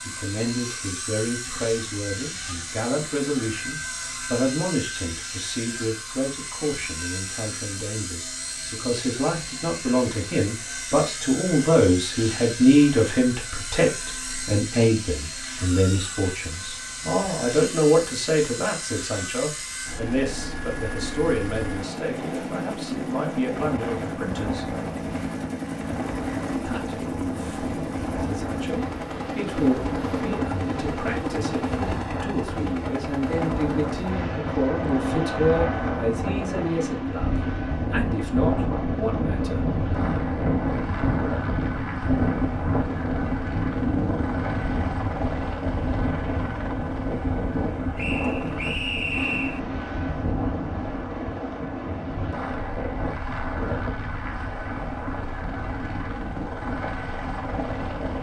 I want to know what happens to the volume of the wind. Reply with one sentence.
The volume of the wind goes up, then down.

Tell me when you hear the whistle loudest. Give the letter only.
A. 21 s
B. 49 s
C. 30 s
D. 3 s
B.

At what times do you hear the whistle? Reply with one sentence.
The whistle can be heard from 48.0 to 49.6 s.